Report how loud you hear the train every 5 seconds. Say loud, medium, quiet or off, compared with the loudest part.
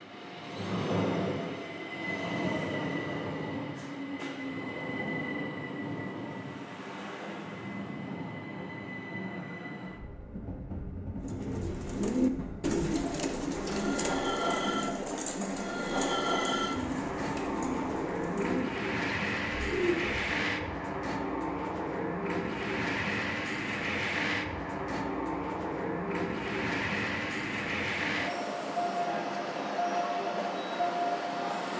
loud, medium, medium, loud, loud, loud, loud.